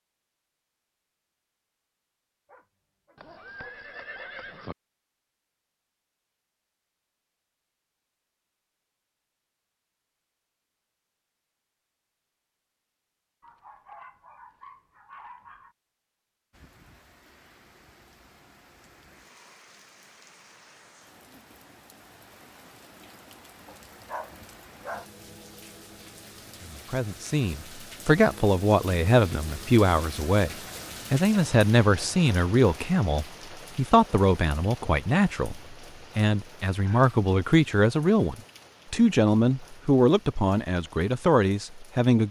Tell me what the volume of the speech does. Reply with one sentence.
The loudness of the speech stays about the same.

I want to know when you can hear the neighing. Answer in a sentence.
The neighing can be heard from 3.1 to 4.8 s.